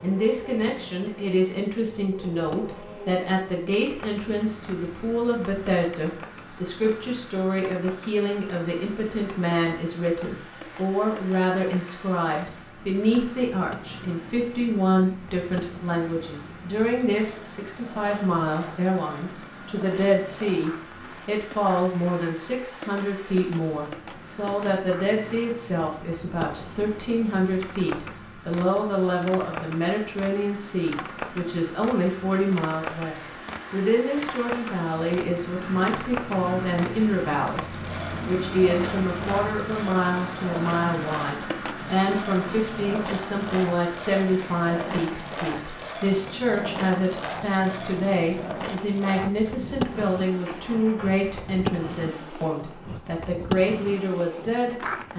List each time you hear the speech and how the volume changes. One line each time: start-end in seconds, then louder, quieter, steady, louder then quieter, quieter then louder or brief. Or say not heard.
0.0-55.1 steady.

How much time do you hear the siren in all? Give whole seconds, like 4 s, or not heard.
not heard.